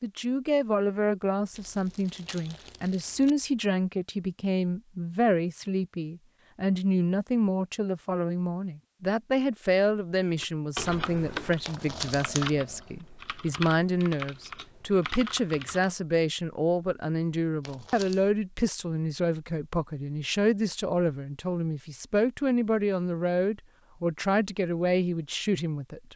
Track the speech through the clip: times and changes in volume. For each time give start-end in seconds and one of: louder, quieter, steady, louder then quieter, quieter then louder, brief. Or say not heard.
0.0-26.1 steady.